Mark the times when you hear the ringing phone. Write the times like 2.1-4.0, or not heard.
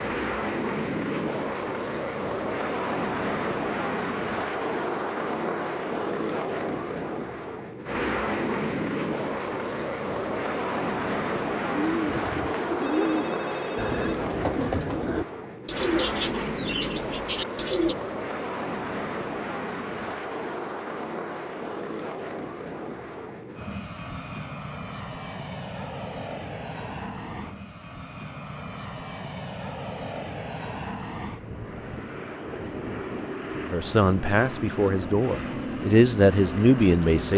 12.2-14.2.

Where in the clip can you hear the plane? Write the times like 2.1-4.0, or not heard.
0.0-37.3.